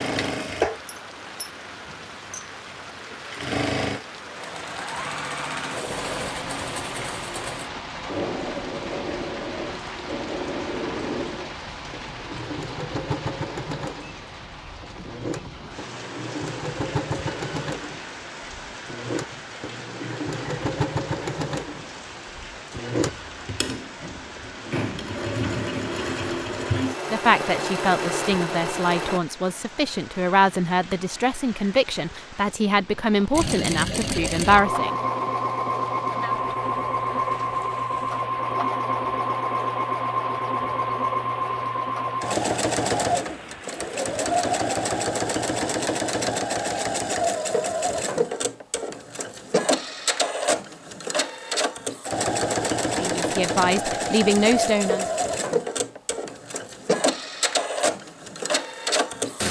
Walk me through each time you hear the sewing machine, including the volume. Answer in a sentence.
You can hear the sewing machine from 0.0 to 29.2 s, at a steady volume; and from 33.3 to 59.4 s, at a steady volume.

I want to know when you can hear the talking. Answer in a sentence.
You can hear the talking from 27.1 to 35.0 s and from 53.0 to 55.0 s.